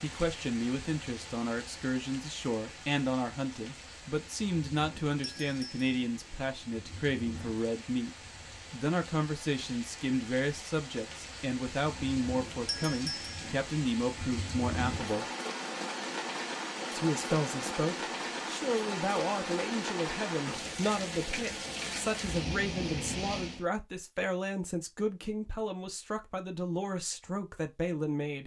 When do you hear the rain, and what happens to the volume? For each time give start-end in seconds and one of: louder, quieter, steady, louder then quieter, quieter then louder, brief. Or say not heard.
0.0-23.6 louder.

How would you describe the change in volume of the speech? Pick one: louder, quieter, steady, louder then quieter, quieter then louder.
steady.